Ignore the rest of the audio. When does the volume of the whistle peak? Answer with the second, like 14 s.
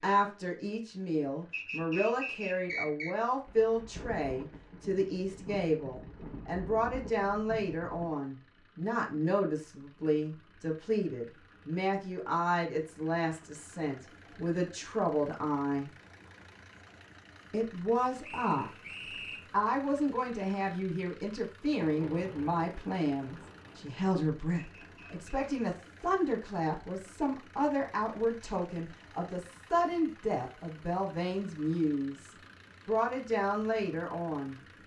3 s.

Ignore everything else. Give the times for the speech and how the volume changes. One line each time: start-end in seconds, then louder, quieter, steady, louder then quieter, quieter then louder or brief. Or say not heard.
0.0-15.9 steady
17.5-18.7 brief
19.5-34.6 steady.